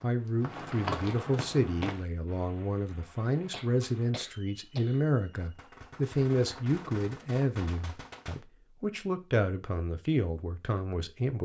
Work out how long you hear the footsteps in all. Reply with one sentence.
You can hear the footsteps for 2 seconds altogether.